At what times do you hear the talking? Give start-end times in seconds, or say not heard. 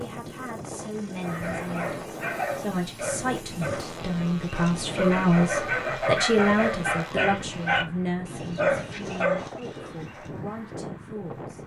0.0-11.6.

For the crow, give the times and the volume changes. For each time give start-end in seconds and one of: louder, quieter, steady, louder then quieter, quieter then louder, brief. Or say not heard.
not heard.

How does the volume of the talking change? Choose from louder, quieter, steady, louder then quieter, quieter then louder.
louder then quieter.